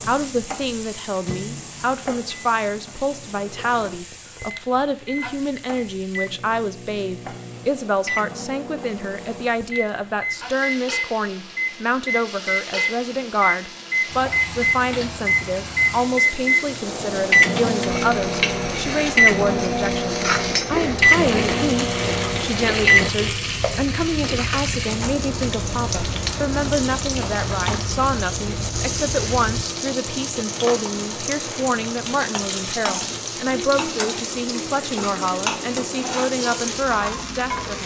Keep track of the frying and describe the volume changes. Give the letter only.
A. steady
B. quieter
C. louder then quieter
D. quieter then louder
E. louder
E.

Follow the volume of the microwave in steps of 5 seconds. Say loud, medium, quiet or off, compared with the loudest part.
quiet, quiet, medium, loud, loud, off, off, off.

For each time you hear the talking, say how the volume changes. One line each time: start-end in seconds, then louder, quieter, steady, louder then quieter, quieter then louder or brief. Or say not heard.
0.0-37.8 steady.